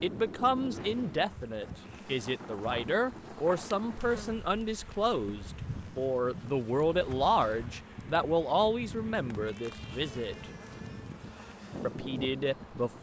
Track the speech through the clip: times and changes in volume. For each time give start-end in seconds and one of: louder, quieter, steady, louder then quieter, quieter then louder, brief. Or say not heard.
0.0-10.4 steady
11.8-12.9 brief.